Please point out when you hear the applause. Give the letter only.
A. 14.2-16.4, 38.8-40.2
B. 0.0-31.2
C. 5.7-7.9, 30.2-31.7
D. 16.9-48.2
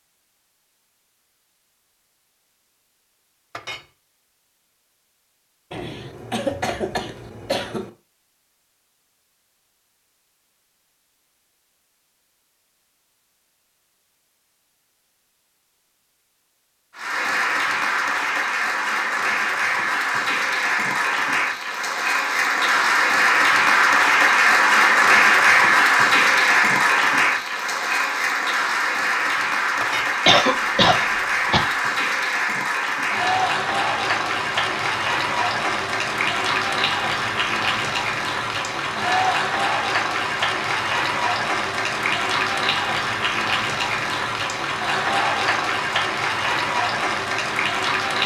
D.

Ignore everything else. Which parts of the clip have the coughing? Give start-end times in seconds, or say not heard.
5.7-7.9, 30.2-31.7.